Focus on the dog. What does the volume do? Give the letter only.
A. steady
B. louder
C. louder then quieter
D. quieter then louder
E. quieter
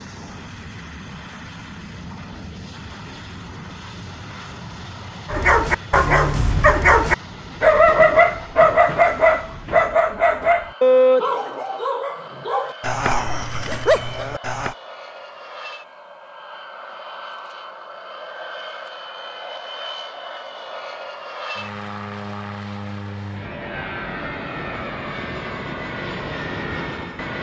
E.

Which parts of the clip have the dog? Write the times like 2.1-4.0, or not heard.
5.2-14.8.